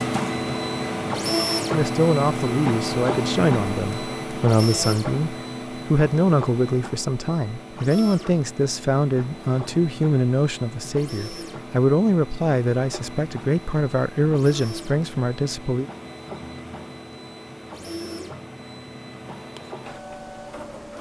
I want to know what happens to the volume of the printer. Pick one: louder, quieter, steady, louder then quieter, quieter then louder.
quieter.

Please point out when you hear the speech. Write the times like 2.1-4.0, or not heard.
1.7-15.8.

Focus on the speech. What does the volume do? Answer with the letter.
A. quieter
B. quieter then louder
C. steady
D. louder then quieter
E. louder
C.